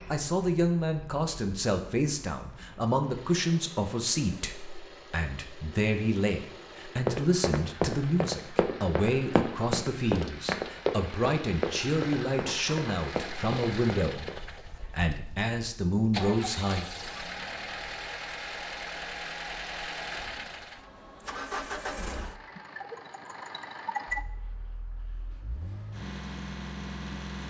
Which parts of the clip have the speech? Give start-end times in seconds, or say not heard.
0.1-16.9.